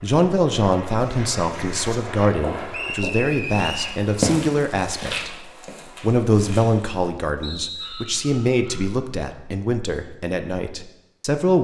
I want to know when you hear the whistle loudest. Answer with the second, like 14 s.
3 s.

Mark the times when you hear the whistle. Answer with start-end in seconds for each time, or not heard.
2.7-4.0, 7.4-8.2.